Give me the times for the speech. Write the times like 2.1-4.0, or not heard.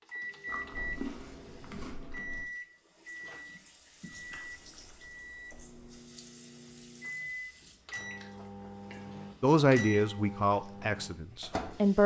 9.4-12.0.